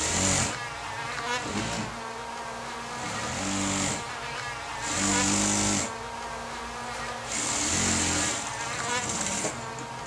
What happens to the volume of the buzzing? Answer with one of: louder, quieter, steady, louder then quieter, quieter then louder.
steady.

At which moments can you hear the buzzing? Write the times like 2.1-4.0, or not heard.
0.0-10.0.